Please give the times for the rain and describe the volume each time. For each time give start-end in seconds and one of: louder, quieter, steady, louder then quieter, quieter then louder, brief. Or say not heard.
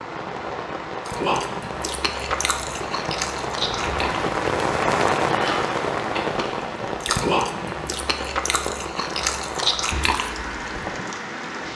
0.0-11.7 louder then quieter.